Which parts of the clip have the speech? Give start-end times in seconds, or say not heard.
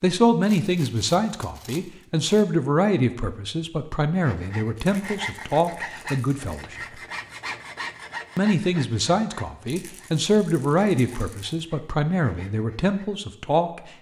0.0-7.0, 8.3-13.8.